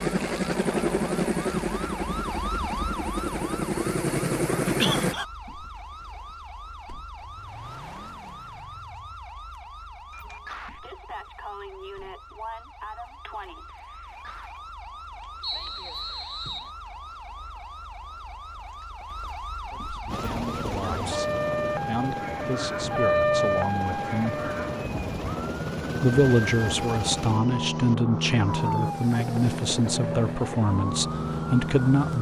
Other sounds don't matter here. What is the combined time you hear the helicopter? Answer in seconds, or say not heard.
17 s.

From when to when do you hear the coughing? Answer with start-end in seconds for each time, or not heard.
4.7-5.2.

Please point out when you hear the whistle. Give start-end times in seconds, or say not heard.
15.4-16.7.